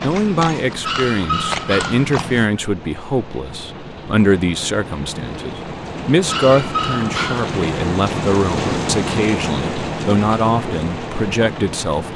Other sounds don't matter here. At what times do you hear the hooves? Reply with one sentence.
You can hear the hooves from 0.0 to 2.5 s.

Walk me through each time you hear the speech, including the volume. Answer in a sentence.
You can hear the speech from 0.0 to 12.1 s, at a steady volume.